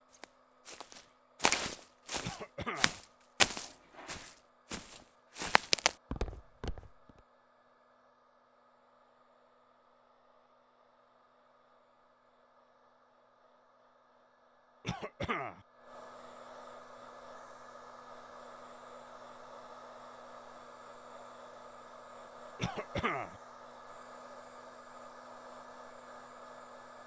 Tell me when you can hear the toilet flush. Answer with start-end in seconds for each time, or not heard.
3.5-4.4.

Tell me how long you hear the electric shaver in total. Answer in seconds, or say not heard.
not heard.